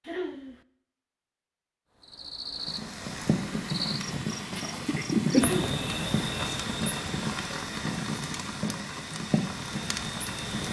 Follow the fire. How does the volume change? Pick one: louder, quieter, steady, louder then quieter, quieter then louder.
steady.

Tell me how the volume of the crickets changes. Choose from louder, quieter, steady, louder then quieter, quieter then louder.
louder then quieter.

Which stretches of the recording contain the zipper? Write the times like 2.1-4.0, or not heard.
not heard.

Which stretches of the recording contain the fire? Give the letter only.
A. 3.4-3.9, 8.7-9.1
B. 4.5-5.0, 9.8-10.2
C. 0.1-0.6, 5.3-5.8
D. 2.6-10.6
D.